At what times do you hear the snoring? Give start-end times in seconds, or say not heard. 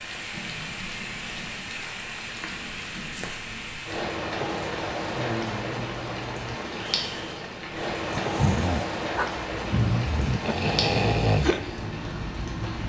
5.2-11.9.